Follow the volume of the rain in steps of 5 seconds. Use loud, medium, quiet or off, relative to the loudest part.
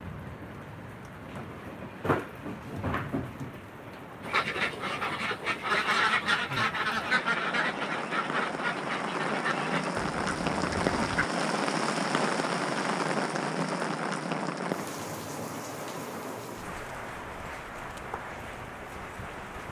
medium, medium, loud, medium.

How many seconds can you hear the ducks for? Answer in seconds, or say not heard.
7 s.